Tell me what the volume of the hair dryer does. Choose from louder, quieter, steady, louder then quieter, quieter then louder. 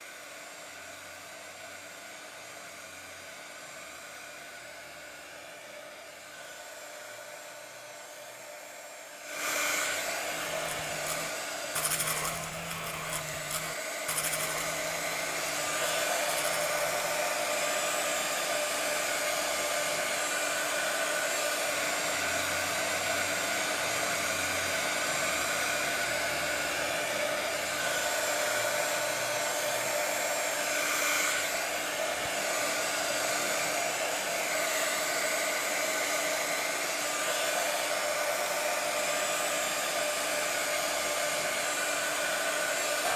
louder.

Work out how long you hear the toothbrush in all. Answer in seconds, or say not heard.
7 s.